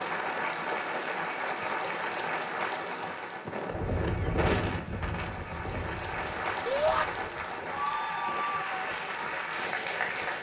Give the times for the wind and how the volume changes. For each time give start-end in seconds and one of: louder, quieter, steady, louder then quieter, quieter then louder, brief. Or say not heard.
0.1-10.3 louder then quieter.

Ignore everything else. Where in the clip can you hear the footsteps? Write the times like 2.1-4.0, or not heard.
not heard.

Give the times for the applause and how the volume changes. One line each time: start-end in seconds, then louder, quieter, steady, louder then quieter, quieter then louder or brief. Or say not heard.
0.0-10.3 quieter then louder.